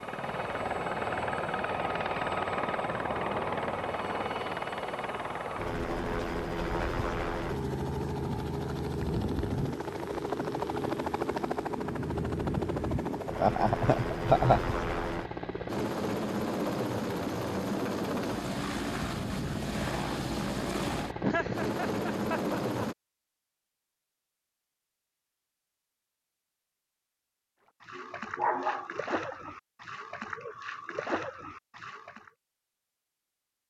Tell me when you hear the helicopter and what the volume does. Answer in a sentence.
You can hear the helicopter from 0.0 to 22.9 s, at a steady volume.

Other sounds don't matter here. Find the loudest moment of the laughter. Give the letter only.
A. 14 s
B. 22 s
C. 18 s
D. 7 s
A.